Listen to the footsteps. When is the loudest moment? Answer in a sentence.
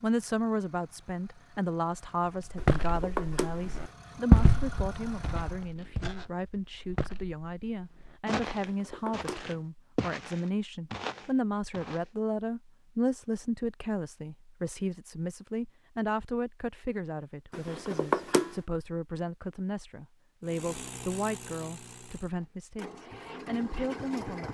The loudest moment of the footsteps is at 4 seconds.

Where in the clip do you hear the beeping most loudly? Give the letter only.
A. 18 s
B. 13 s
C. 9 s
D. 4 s
A.